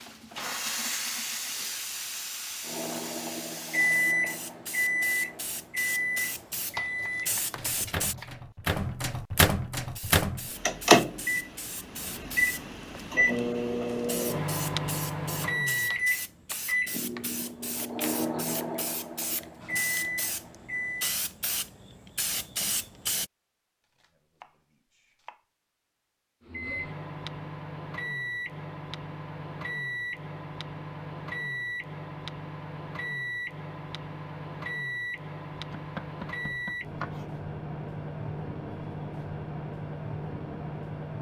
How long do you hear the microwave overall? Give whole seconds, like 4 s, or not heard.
33 s.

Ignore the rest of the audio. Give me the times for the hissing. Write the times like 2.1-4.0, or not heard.
0.0-8.2, 9.8-23.3.